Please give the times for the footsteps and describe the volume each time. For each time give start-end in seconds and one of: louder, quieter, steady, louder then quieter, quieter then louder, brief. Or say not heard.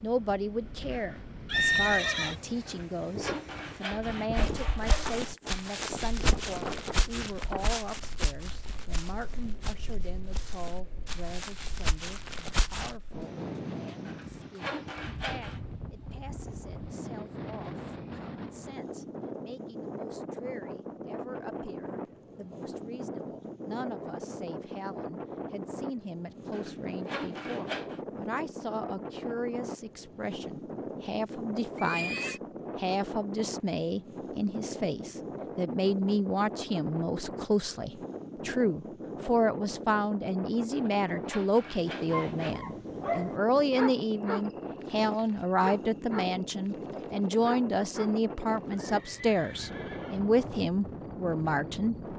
4.3-13.0 quieter then louder.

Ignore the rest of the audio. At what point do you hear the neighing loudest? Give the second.
2 s.